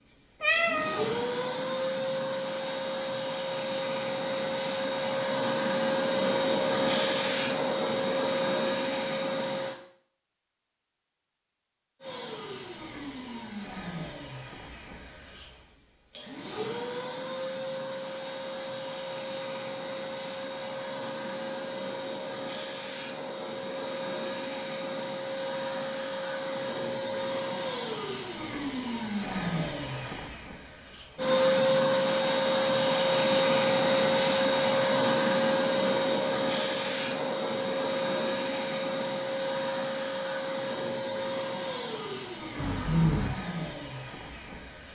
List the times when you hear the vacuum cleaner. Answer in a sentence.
You can hear the vacuum cleaner from 0.0 to 9.8 s and from 12.0 to 44.9 s.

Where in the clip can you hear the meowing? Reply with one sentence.
The meowing can be heard from 0.4 to 1.1 s and from 42.5 to 43.3 s.